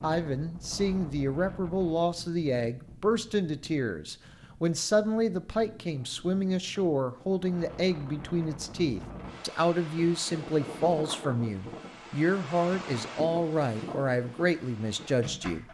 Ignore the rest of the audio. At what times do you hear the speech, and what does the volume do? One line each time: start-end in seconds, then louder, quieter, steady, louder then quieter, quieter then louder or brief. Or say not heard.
0.0-15.6 steady.